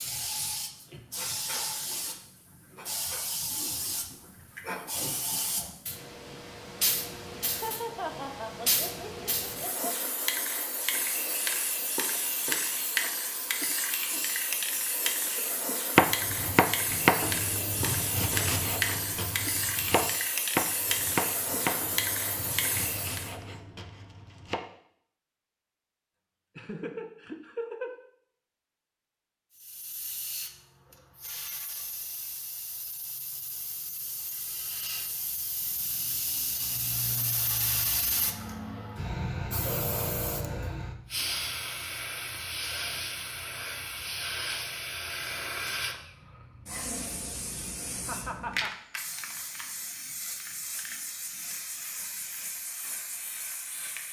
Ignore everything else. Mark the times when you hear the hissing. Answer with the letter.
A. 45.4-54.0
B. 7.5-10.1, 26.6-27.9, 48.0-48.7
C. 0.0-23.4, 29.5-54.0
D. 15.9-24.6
C.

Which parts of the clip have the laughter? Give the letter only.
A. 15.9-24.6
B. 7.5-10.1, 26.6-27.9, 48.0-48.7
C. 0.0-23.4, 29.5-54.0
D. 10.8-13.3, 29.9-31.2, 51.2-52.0
B.